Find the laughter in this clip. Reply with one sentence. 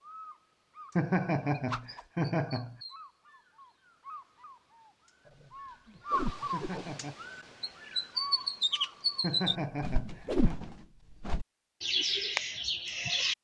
The laughter can be heard from 0.9 to 2.8 s, from 6.5 to 7.2 s and from 9.2 to 10.6 s.